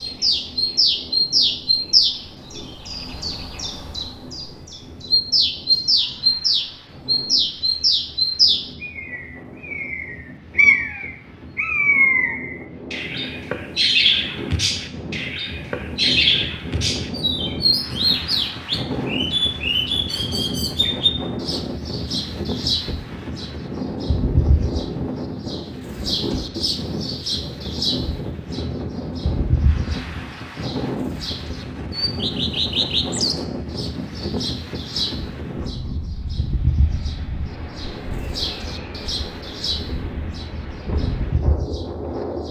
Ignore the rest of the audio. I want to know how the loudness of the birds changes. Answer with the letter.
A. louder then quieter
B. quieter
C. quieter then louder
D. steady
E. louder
B.